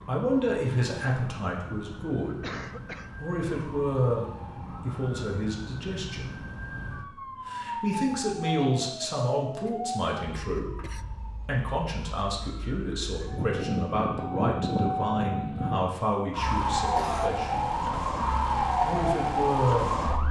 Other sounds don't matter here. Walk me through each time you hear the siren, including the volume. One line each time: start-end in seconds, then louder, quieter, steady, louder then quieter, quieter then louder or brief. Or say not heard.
0.0-20.2 louder.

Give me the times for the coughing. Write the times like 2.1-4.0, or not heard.
2.4-3.1, 9.7-11.1, 16.9-17.4.